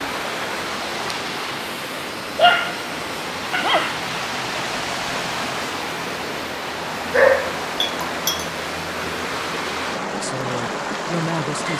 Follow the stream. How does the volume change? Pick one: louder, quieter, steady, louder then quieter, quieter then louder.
steady.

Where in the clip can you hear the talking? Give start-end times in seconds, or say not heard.
10.2-11.7.